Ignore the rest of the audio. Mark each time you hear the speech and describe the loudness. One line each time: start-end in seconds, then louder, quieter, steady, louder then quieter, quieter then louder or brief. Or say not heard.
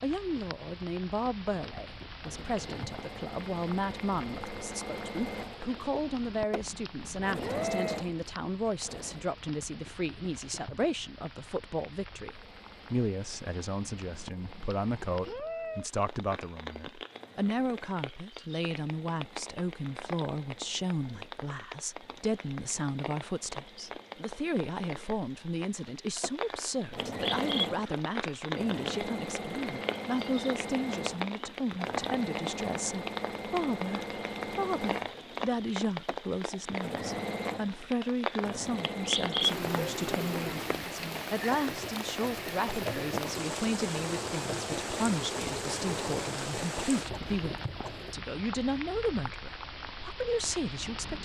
0.0-51.1 steady.